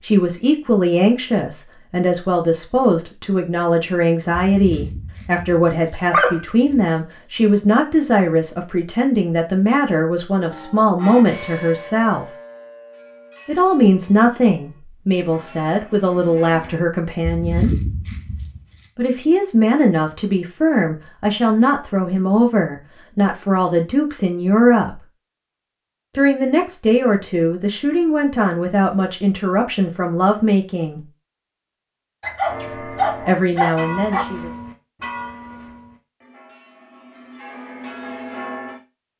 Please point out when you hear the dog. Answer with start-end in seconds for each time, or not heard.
4.3-6.8, 17.2-18.9, 32.2-34.2.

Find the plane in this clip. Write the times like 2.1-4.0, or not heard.
not heard.